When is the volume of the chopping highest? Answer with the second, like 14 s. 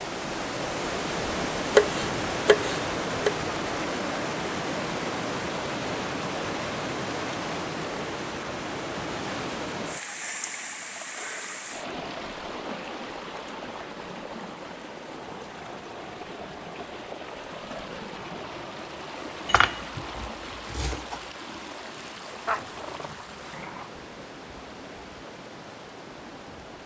2 s.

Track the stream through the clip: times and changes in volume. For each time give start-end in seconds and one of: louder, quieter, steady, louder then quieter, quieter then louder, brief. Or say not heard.
0.0-26.8 quieter.